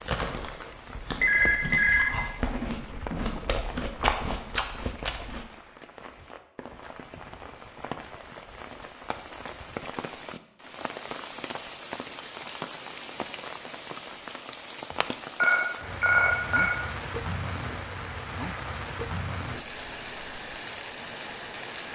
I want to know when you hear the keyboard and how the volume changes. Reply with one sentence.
The keyboard can't be heard in this clip.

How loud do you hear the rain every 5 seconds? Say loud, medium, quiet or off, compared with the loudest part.
medium, medium, loud, loud, loud.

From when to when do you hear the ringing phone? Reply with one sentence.
The ringing phone can be heard from 1.2 to 3.4 s and from 15.3 to 16.6 s.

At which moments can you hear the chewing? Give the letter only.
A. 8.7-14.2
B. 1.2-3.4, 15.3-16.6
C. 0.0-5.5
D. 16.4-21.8
C.